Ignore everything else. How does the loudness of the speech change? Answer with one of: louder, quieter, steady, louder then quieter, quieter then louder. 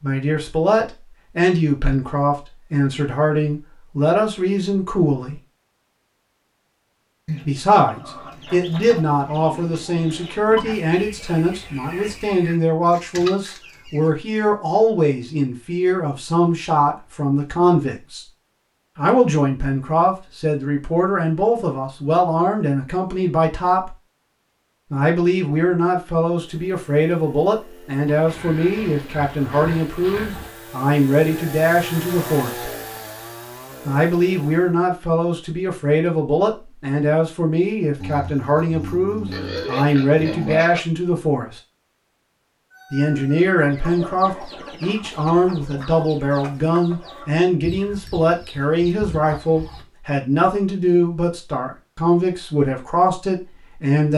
steady.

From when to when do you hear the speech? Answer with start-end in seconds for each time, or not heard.
0.0-5.4, 7.5-18.2, 18.9-23.9, 24.9-32.6, 33.9-41.6, 42.9-54.1.